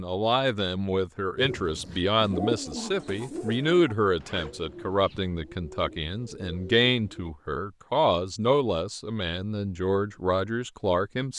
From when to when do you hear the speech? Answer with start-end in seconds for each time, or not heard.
0.0-11.3.